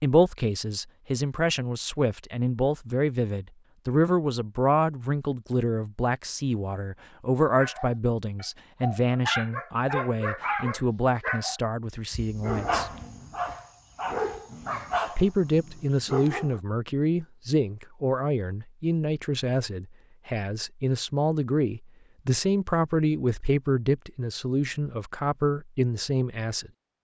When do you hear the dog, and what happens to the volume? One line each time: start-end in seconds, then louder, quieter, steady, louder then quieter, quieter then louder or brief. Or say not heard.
7.5-16.6 steady.